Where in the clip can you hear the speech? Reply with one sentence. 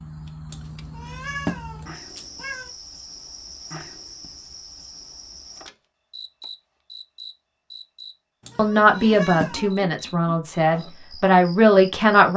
The speech can be heard from 8.6 to 12.3 s.